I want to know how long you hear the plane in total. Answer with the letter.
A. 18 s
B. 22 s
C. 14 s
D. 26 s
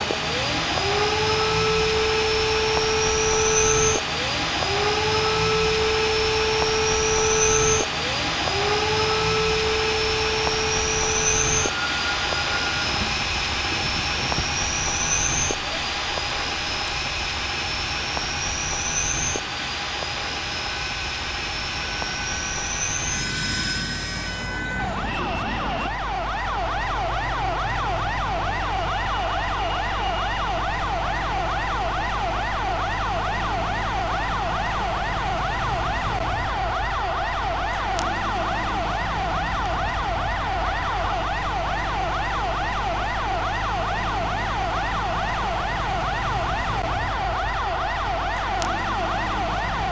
D.